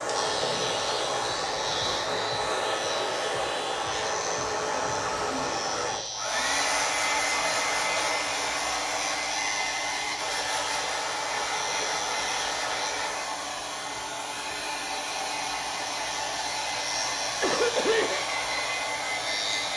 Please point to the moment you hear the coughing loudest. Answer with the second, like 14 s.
18 s.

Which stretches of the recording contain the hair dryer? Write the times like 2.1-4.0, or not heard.
0.0-19.7.